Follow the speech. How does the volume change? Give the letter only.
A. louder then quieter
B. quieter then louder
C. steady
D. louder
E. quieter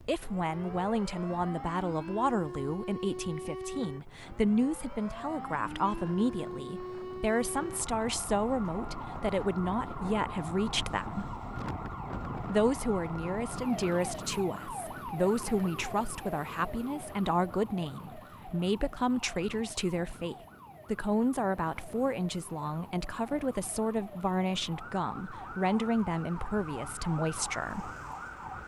C.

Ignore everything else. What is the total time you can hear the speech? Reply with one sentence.
The speech can be heard for 27 seconds in total.